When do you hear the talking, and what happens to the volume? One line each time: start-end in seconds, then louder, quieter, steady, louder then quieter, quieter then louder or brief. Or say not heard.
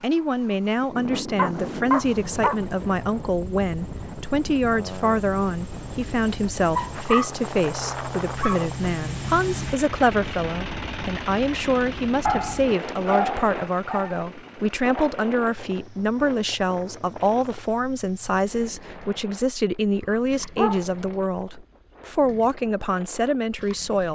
0.0-24.0 steady.